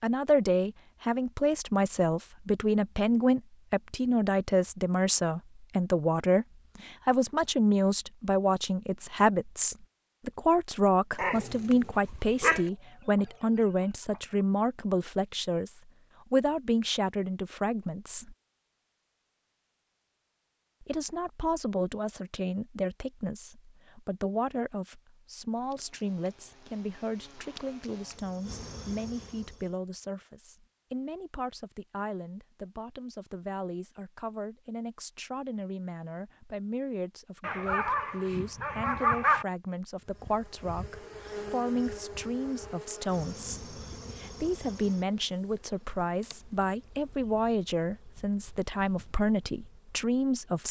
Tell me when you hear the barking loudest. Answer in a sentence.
The loudest moment of the barking is at 39 seconds.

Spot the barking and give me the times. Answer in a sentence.
You can hear the barking from 11.2 to 12.6 s and from 37.4 to 39.5 s.